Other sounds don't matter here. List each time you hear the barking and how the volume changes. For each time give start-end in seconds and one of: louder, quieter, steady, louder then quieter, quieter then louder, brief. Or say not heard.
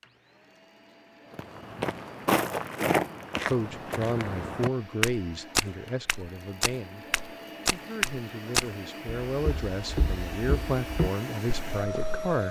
not heard.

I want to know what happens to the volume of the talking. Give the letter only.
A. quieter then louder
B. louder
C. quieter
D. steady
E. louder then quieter
A.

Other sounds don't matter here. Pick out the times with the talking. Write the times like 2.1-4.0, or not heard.
3.5-12.4.